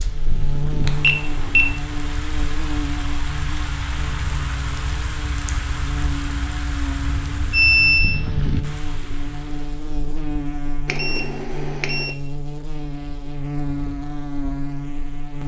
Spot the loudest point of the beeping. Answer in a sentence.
The loudest moment of the beeping is at 8 seconds.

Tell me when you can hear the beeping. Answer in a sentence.
The beeping can be heard from 0.8 to 1.7 s, from 7.0 to 8.2 s and from 10.8 to 12.1 s.